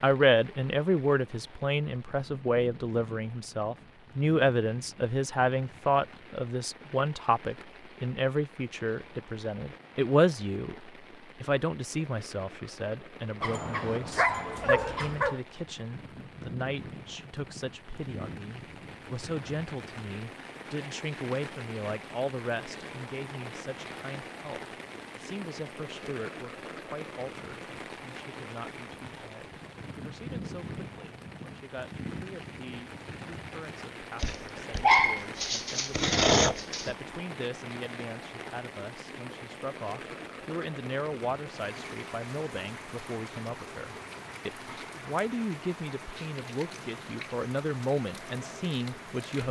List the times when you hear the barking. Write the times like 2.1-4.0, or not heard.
13.4-15.4, 34.2-37.0.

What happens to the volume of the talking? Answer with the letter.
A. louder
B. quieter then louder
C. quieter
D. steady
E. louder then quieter
B.